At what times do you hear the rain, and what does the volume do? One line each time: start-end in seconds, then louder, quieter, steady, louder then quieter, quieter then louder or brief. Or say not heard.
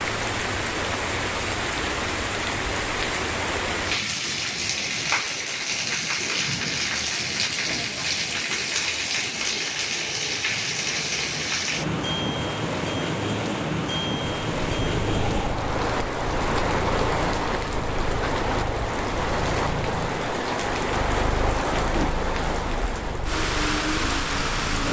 0.0-24.8 steady.